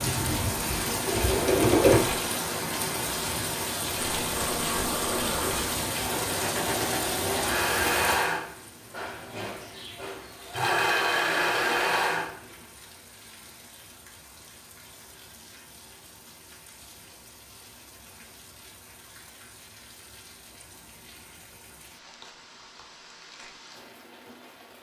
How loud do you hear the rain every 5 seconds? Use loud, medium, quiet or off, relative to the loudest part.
loud, loud, quiet, quiet, quiet.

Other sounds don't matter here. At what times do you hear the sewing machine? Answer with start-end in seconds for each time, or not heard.
0.0-2.2, 4.0-12.4.